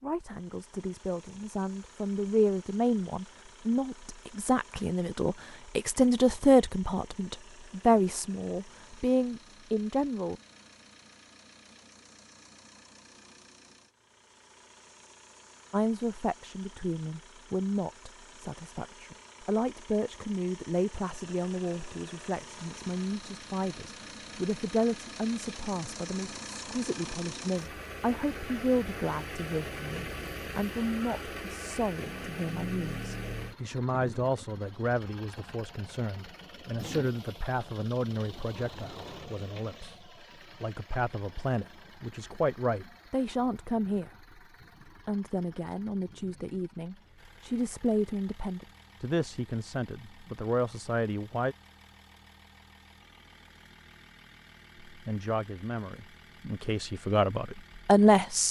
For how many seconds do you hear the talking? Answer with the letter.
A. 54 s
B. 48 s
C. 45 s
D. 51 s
B.